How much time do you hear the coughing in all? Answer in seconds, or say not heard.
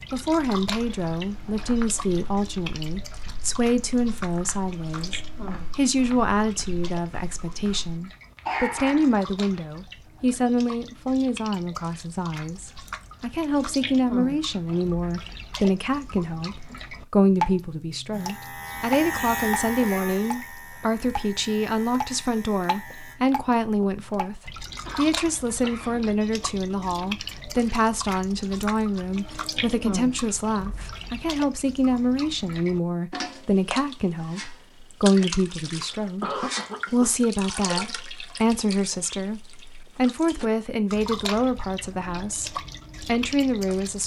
4 s.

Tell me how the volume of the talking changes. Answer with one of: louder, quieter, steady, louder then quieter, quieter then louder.
steady.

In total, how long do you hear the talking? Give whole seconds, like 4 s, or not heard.
44 s.